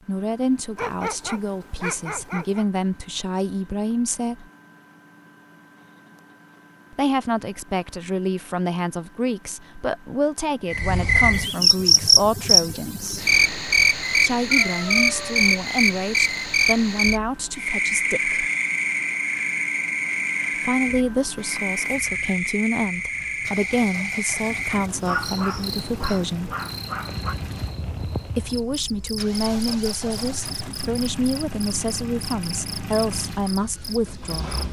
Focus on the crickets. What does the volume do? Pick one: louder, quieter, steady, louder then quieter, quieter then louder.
quieter.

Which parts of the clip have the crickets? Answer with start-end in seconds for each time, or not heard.
10.7-34.5.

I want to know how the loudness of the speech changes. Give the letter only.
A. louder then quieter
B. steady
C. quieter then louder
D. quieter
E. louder
B.